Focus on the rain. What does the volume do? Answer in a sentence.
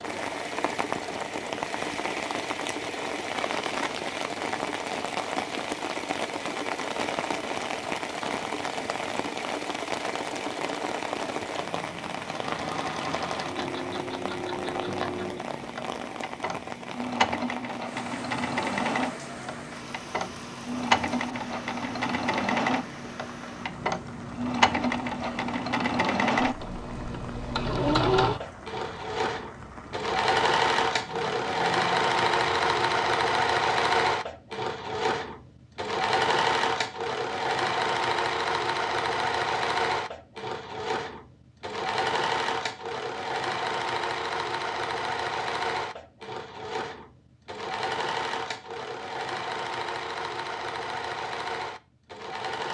The loudness of the rain goes down.